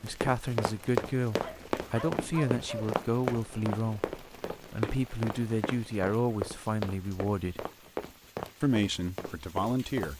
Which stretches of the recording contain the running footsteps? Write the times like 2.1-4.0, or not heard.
0.1-10.1.